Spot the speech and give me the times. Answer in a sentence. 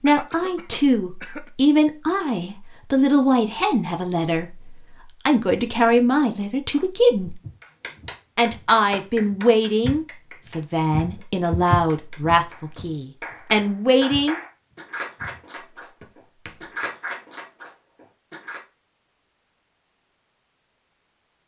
The speech can be heard from 0.0 to 7.4 s and from 8.3 to 14.4 s.